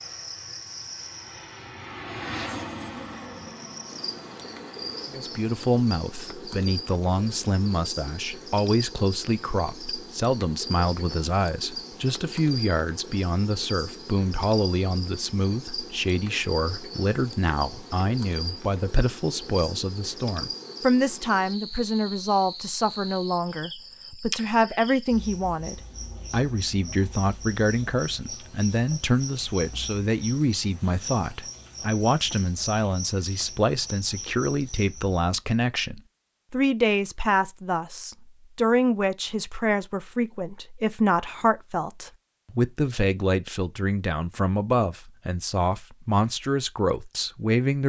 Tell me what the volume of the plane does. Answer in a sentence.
The loudness of the plane goes up, then down.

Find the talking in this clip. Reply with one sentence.
The talking can be heard from 5.1 to 47.8 s.